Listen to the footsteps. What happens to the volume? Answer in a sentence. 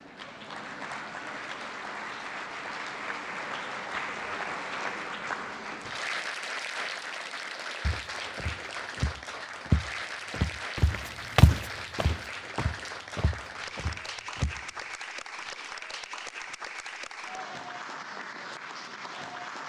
The volume of the footsteps goes up, then down.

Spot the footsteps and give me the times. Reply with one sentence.
The footsteps can be heard from 7.8 to 14.6 s.